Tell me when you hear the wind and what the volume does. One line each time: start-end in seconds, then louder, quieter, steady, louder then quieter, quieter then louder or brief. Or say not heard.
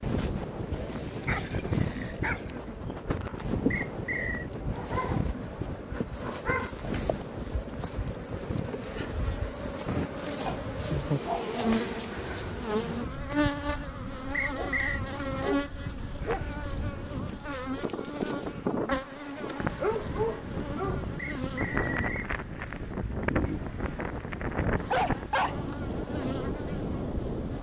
0.0-27.5 quieter then louder.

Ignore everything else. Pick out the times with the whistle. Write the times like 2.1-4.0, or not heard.
3.7-4.5, 14.3-15.0, 21.4-22.3.